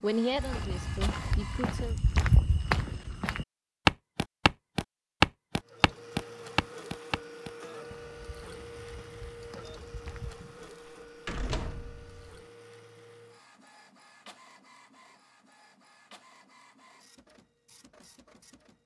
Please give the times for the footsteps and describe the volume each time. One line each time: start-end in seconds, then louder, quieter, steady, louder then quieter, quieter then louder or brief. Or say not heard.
0.3-10.4 louder then quieter.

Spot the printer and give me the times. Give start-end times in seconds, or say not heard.
0.0-1.8, 5.6-18.8.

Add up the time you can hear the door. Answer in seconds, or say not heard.
2 s.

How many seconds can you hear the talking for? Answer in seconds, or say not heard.
2 s.